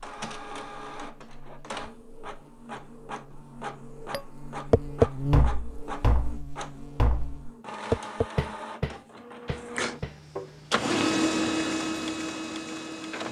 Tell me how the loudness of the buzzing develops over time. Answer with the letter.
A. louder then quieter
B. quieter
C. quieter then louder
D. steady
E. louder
A.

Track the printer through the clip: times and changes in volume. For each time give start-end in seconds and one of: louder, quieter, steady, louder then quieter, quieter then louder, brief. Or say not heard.
0.0-13.2 louder.